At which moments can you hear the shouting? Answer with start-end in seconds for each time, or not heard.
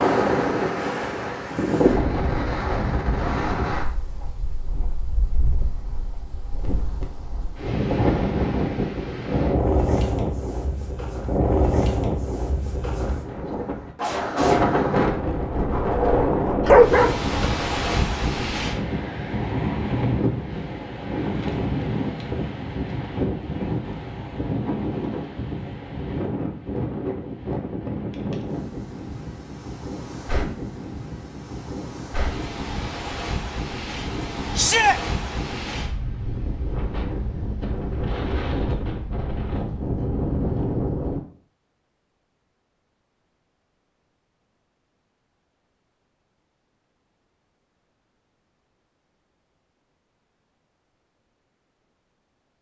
34.5-35.0.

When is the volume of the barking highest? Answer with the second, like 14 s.
17 s.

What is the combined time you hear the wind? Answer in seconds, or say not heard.
41 s.